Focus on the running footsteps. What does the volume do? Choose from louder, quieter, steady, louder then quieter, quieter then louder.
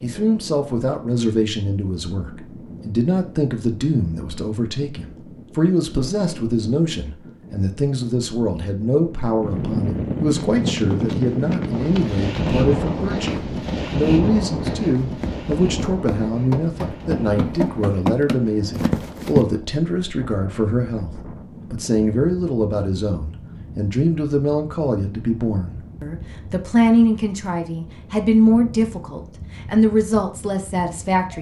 louder.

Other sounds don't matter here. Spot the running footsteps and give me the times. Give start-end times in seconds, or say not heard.
10.3-19.4.